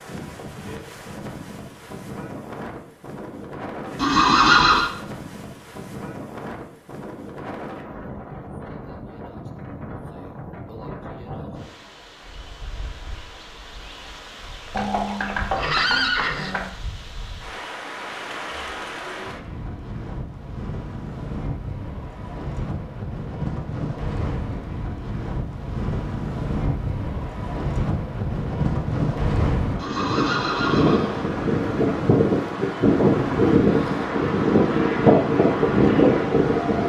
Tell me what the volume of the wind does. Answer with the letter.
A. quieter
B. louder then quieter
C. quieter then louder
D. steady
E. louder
E.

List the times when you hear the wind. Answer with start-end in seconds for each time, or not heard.
0.0-36.8.